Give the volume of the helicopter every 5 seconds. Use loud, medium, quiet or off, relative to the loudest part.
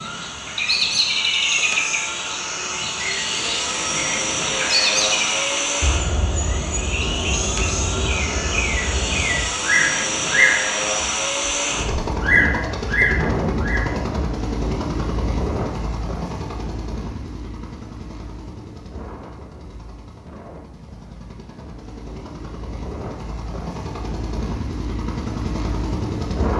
loud, loud, loud, medium, medium, loud.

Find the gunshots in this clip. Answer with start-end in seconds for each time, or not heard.
not heard.